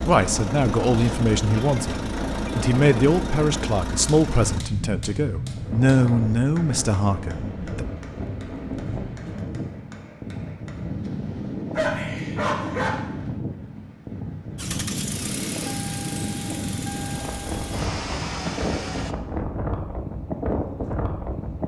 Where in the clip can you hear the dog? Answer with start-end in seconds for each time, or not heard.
11.8-12.9.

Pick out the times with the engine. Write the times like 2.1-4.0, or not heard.
0.0-4.7, 14.6-19.1.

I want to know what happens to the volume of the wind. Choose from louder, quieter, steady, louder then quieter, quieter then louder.
steady.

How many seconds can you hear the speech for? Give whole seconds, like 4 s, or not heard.
8 s.